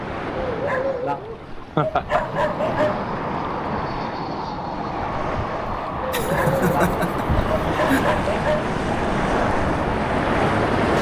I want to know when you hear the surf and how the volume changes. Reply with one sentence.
The surf can be heard from 0.0 to 10.9 s, getting louder.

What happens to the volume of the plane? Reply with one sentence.
The loudness of the plane stays about the same.